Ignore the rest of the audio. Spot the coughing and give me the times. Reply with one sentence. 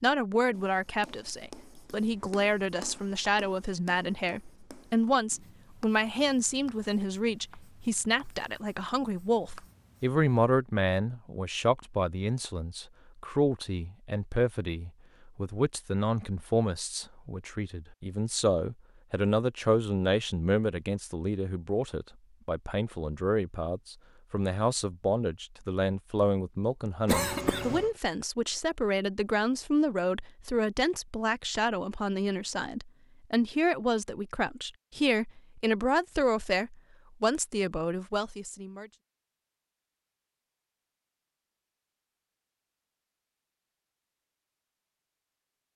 The coughing can be heard from 27.1 to 27.9 s.